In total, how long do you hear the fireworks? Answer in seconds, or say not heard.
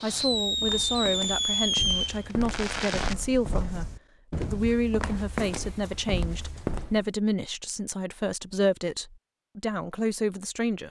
3 s.